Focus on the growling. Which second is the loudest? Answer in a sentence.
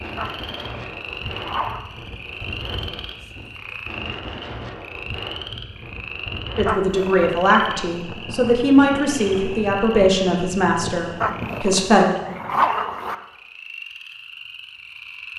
The volume of the growling peaks at 13 seconds.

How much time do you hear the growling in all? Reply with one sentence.
The growling can be heard for 4 seconds in total.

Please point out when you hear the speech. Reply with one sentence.
The speech can be heard from 6.5 to 12.1 s.